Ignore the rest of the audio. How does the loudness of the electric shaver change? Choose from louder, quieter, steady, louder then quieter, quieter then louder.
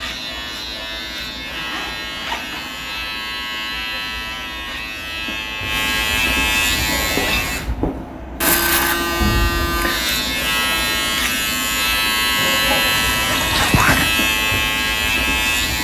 louder.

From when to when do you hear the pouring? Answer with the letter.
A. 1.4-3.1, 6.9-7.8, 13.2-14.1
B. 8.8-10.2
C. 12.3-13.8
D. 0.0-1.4
C.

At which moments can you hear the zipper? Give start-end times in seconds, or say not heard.
1.4-3.1, 6.9-7.8, 13.2-14.1.